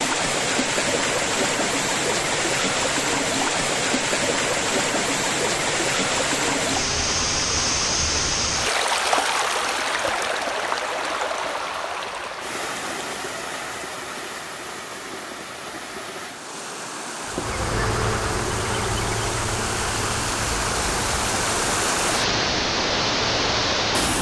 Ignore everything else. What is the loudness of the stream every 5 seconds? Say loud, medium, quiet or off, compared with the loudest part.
loud, loud, medium, medium, loud.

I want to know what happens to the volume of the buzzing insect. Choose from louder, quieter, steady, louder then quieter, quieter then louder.
quieter.